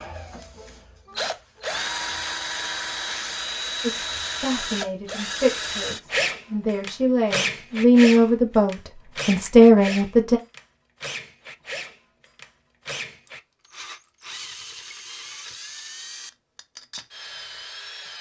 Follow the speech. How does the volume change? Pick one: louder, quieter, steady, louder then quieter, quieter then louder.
louder.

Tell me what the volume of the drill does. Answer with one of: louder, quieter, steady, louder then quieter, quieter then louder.
quieter.